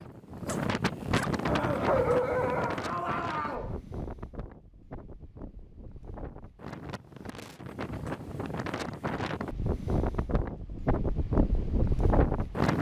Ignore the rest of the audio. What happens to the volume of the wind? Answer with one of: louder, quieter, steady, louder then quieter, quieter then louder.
quieter then louder.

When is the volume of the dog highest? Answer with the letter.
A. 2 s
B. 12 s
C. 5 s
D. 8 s
A.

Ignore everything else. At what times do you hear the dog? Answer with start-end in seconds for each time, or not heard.
1.4-3.8.